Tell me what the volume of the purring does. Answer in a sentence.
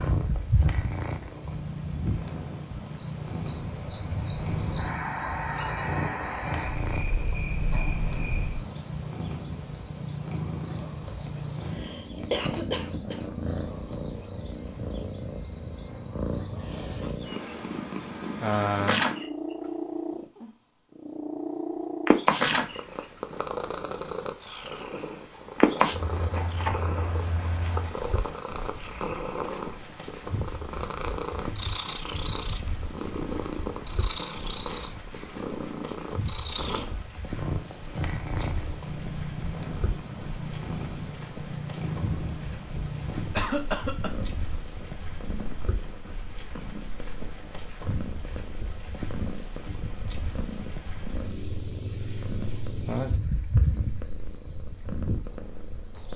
The volume of the purring goes down.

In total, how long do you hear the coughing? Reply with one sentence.
The coughing can be heard for 3 seconds in total.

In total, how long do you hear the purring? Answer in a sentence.
You can hear the purring for 56 seconds altogether.